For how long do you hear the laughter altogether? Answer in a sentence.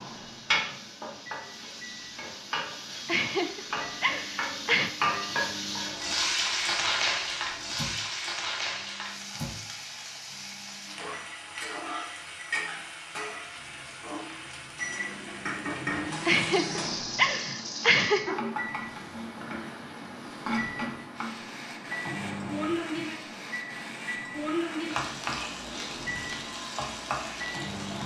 You can hear the laughter for 4 seconds altogether.